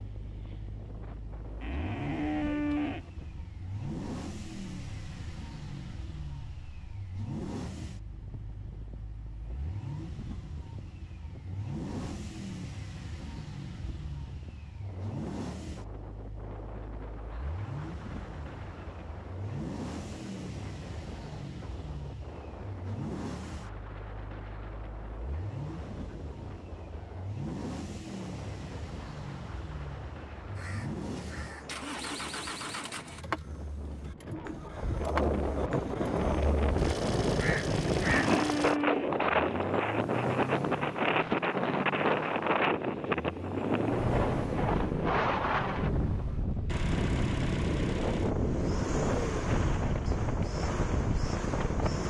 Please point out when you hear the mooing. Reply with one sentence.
You can hear the mooing from 1.6 to 3.1 s and from 37.7 to 39.2 s.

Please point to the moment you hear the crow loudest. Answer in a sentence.
The loudest moment of the crow is at 38 seconds.